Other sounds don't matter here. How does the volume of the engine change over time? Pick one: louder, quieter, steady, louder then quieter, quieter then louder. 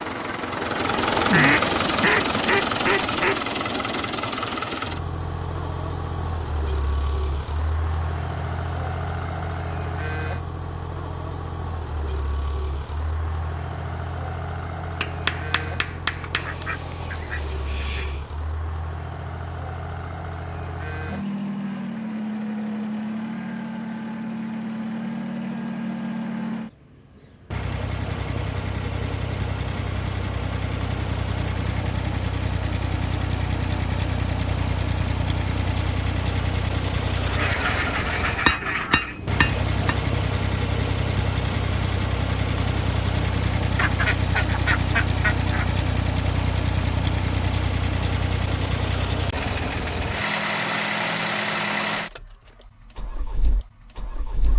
quieter then louder.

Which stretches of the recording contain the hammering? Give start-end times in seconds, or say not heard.
15.0-16.6, 38.5-40.0.